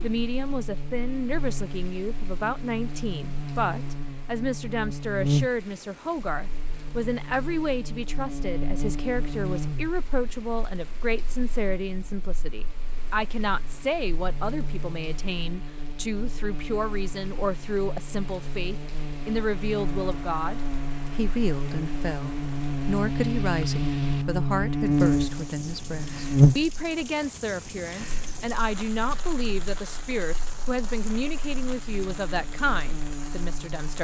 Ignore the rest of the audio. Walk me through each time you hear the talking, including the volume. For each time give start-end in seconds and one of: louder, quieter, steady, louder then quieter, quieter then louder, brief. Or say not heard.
0.0-33.9 steady.